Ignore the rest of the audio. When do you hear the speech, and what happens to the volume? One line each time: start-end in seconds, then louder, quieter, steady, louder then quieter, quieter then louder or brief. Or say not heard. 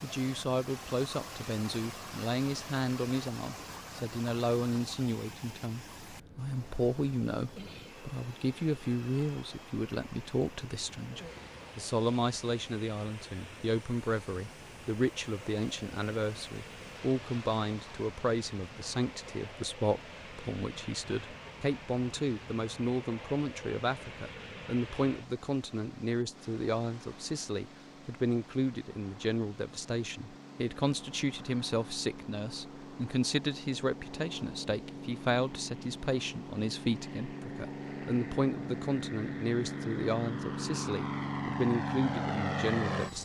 0.0-43.2 steady.